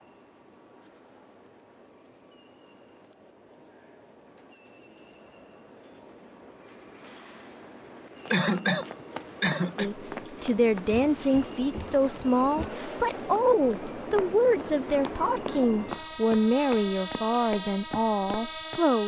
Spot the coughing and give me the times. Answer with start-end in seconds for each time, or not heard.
8.3-9.9.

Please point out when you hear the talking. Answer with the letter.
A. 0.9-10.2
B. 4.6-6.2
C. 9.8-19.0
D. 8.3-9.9
C.